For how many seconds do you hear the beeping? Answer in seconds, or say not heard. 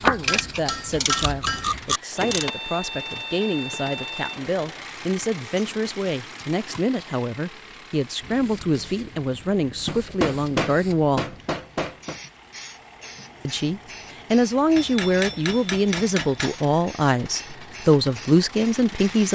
3 s.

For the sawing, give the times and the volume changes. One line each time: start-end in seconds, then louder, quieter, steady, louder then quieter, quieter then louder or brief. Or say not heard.
not heard.